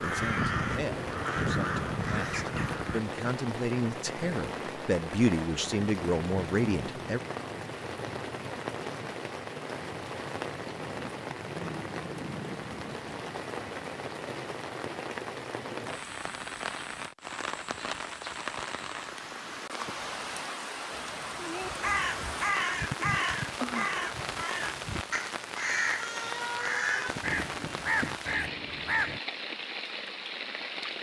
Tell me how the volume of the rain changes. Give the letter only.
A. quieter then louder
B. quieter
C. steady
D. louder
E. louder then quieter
C.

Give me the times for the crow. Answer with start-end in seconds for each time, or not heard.
0.0-3.0, 21.6-29.2.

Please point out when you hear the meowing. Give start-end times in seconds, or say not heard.
20.9-21.7.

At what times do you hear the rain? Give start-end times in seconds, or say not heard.
0.0-30.9.